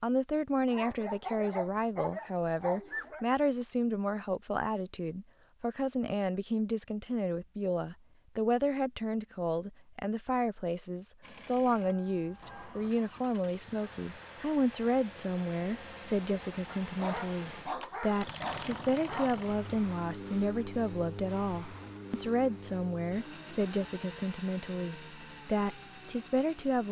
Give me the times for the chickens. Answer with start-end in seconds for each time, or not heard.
not heard.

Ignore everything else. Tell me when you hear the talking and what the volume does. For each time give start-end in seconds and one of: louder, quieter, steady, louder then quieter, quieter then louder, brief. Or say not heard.
0.0-26.8 steady.